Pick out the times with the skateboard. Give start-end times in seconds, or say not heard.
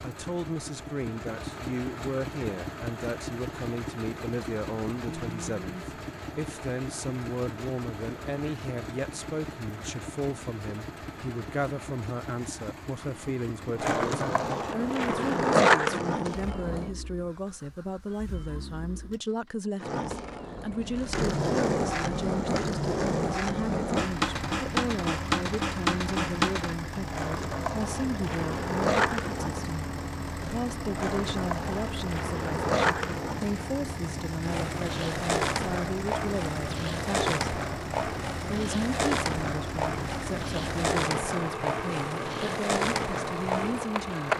13.8-16.9, 19.8-44.3.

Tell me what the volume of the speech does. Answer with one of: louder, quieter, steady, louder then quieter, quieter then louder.
steady.